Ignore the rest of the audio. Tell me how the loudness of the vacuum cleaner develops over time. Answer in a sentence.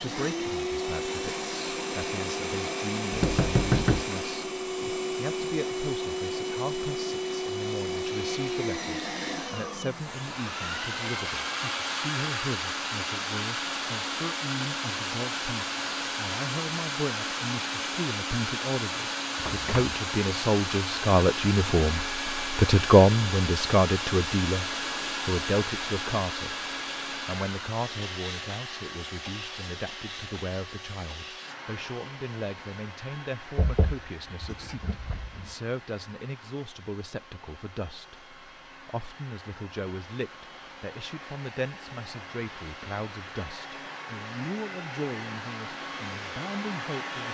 The loudness of the vacuum cleaner goes down.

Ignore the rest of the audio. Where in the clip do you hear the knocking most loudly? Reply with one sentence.
The volume of the knocking peaks at 4 seconds.